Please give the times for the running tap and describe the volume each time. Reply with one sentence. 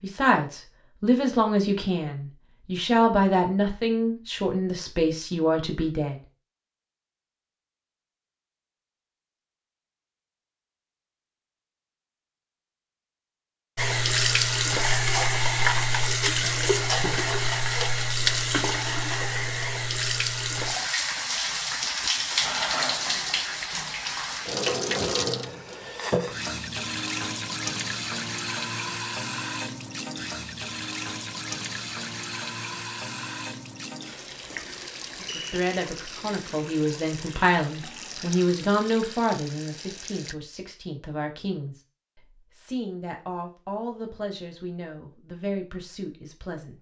The running tap can be heard from 13.8 to 40.4 s, getting quieter.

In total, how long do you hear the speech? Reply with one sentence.
The speech can be heard for 18 seconds in total.